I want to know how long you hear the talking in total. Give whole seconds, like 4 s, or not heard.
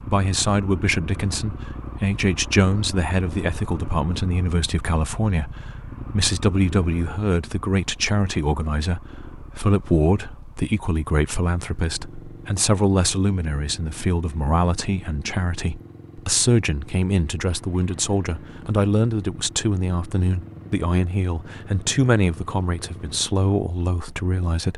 25 s.